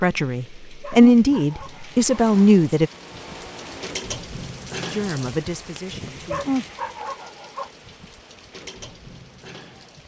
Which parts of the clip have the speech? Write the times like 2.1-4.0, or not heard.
0.0-2.9, 4.8-6.4.